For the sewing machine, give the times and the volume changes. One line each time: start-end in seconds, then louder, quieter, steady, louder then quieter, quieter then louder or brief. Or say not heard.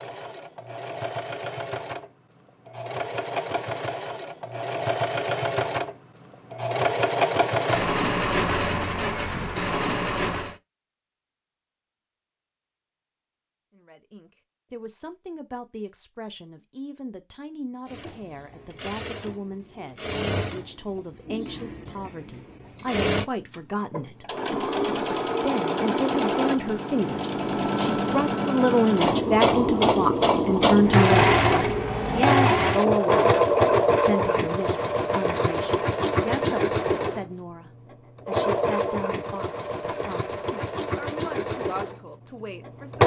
0.0-10.6 louder
17.9-43.0 louder then quieter.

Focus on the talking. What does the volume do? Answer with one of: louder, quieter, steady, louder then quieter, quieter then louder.
louder then quieter.